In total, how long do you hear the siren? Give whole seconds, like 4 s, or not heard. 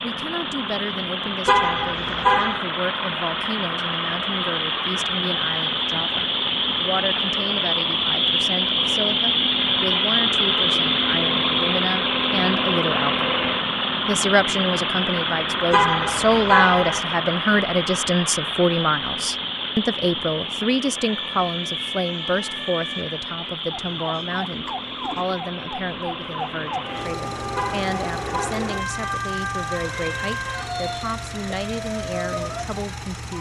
12 s.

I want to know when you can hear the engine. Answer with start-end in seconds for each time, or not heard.
0.0-33.3.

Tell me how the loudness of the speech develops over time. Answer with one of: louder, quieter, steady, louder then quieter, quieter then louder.
louder then quieter.